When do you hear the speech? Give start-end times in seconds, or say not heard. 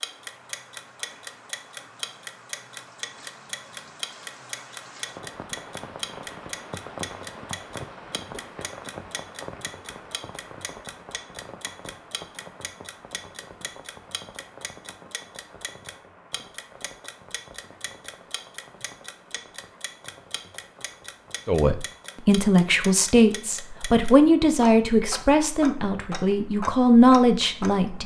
21.4-28.0.